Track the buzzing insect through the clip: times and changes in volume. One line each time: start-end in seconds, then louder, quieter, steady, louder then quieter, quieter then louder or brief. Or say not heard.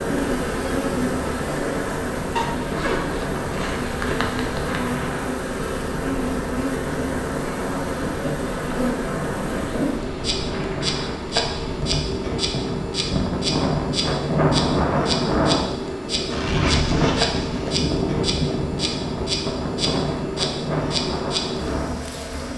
0.0-22.5 steady.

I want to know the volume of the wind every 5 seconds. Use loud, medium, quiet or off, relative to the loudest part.
medium, medium, loud, loud, loud.